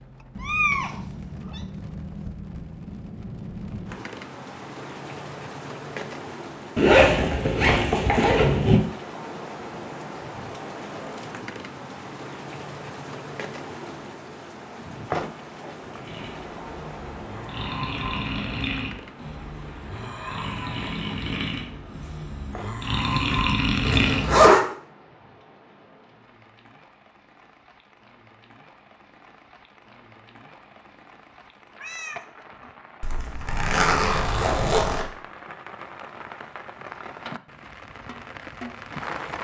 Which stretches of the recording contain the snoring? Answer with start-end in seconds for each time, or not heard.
16.0-24.4.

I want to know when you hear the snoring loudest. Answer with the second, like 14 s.
24 s.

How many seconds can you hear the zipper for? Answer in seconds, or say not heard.
5 s.